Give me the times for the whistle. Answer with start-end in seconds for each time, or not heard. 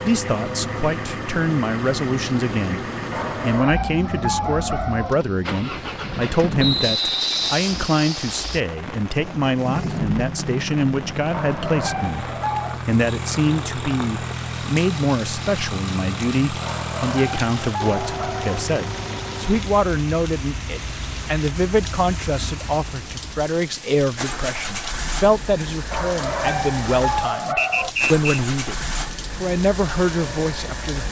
6.5-7.5, 27.6-28.4.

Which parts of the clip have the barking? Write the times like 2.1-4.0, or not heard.
3.1-5.2, 11.3-12.8, 16.6-18.6, 25.9-27.9.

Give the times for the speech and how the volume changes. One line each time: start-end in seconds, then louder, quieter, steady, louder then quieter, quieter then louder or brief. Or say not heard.
0.0-31.0 steady.